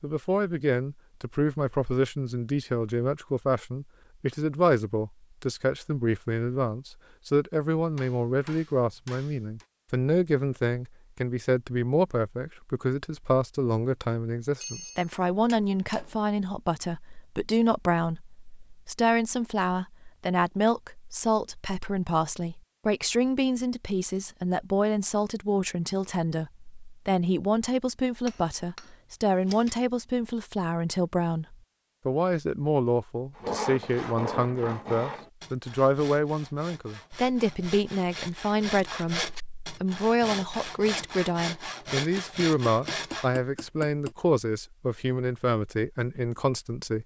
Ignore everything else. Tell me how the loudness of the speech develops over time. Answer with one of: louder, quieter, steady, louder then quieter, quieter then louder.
steady.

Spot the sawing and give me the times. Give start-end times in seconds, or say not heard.
33.4-43.3.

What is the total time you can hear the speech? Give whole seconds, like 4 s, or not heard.
47 s.